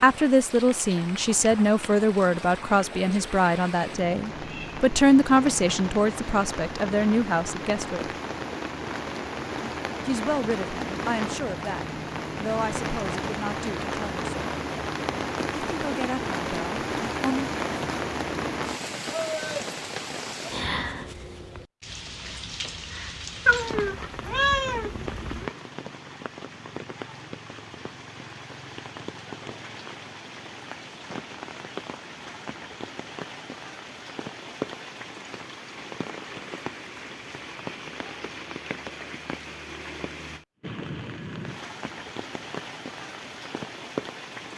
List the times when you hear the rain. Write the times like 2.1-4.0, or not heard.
0.0-44.5.